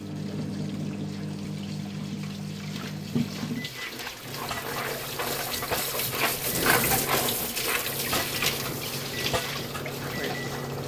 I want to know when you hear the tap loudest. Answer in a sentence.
The volume of the tap peaks at 7 seconds.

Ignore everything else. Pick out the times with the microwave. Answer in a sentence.
The microwave can be heard from 0.0 to 10.8 s.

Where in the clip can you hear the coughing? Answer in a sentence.
The coughing can't be heard in this clip.